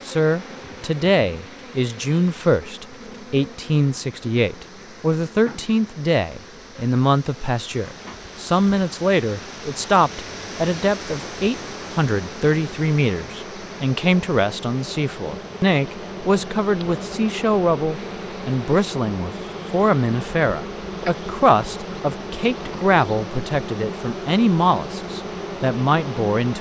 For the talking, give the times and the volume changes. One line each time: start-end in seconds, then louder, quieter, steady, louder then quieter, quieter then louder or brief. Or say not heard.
0.1-26.5 steady.